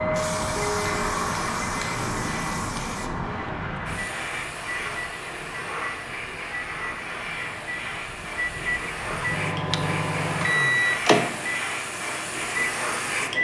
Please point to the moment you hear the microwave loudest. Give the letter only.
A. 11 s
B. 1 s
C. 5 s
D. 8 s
A.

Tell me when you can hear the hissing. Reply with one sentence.
The hissing can be heard from 0.0 to 13.3 s.